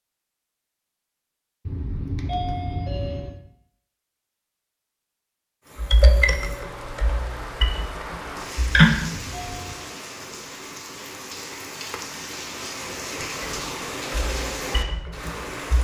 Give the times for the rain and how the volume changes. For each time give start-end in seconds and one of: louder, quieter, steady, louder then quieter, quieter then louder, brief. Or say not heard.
5.6-15.8 louder.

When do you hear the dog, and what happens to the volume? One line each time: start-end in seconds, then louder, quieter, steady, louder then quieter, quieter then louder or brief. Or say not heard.
not heard.